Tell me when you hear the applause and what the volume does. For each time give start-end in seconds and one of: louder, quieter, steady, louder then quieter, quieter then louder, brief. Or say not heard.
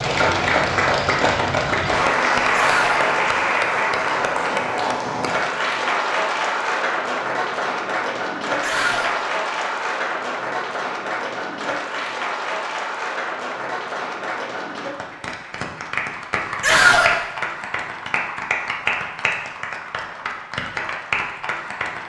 0.0-22.0 quieter.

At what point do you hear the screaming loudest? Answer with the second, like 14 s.
17 s.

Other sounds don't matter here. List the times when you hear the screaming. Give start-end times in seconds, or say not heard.
2.5-3.0, 8.6-9.2, 16.6-17.1.